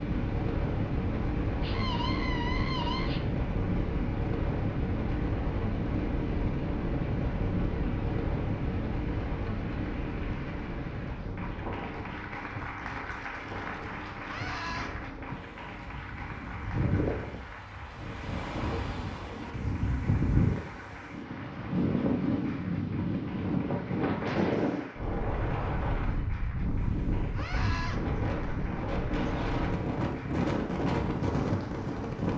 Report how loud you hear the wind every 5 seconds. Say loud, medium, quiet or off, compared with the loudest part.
loud, loud, medium, medium, loud, loud, loud.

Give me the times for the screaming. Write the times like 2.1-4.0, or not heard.
1.6-3.2, 14.2-14.9, 27.4-28.0.